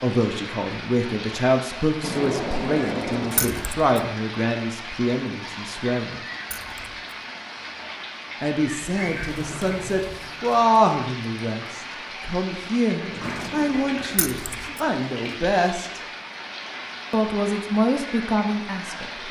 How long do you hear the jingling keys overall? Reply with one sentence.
You can hear the jingling keys for 2 seconds altogether.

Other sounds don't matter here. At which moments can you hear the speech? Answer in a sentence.
The speech can be heard from 0.0 to 6.2 s, from 8.4 to 16.0 s and from 17.1 to 19.1 s.